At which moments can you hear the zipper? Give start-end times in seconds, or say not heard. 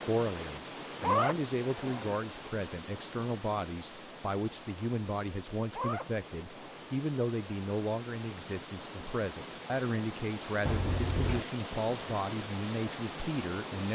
1.0-2.1, 5.7-6.9, 10.7-11.4.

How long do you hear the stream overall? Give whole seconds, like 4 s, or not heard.
14 s.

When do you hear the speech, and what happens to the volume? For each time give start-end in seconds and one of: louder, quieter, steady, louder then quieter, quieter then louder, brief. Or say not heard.
0.0-13.9 steady.